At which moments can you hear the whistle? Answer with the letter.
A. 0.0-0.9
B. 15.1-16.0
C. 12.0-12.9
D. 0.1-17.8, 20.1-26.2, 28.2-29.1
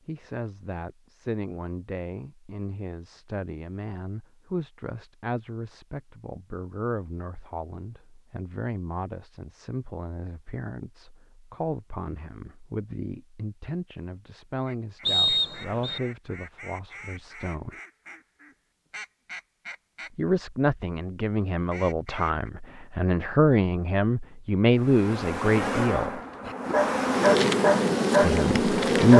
B.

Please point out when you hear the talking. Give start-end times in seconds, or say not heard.
0.1-17.8, 20.1-26.2, 28.2-29.1.